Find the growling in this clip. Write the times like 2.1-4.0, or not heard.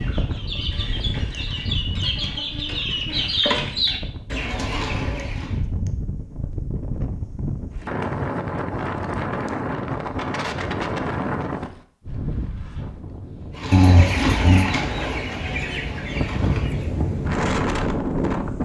13.7-14.7.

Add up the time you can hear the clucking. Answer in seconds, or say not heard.
9 s.